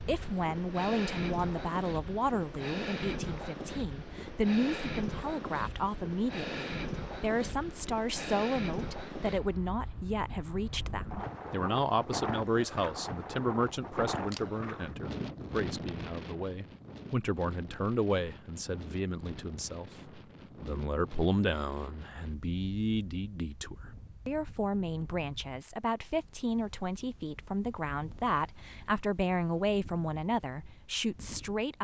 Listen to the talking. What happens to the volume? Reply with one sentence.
The volume of the talking stays about the same.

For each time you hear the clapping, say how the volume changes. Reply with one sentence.
The clapping can't be heard in this clip.